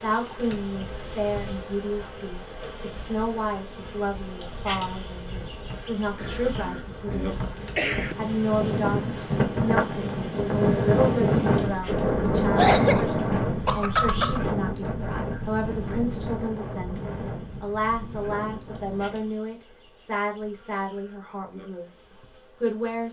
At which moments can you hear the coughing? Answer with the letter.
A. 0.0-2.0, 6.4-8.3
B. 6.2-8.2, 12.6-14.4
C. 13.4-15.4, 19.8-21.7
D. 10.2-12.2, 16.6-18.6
B.